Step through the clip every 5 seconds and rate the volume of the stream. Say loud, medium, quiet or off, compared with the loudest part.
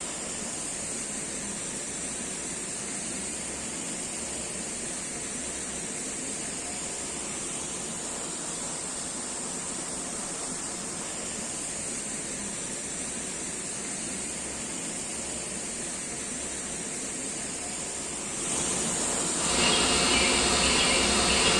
medium, medium, medium, loud, loud.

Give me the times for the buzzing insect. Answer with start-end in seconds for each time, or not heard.
19.4-21.5.